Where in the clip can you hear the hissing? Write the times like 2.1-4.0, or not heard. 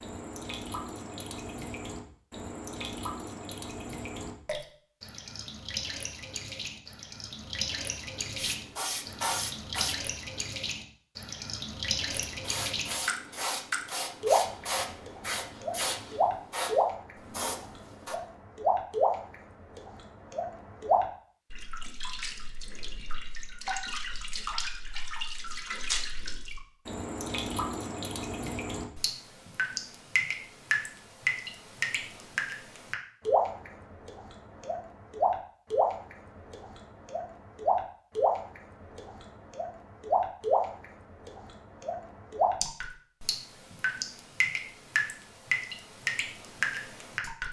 8.3-10.1, 12.1-18.1.